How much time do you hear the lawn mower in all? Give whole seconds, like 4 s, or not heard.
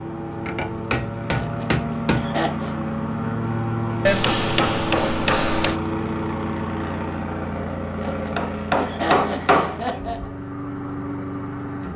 12 s.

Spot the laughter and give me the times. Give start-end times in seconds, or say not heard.
1.3-2.8, 8.0-10.2.